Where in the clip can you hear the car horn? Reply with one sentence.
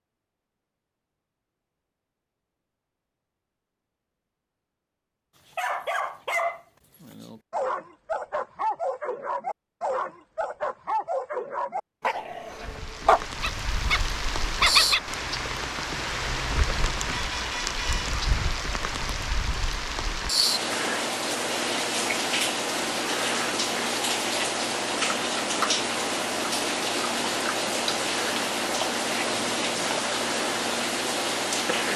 You can hear the car horn from 17.1 to 18.1 s.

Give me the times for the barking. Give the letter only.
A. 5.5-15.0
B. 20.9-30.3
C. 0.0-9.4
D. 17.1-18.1
A.